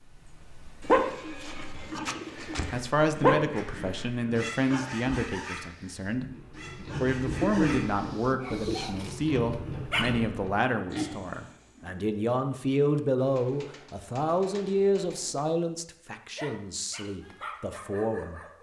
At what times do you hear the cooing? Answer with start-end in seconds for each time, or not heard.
0.8-2.9, 6.8-8.8, 13.2-15.4.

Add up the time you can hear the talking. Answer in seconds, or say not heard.
16 s.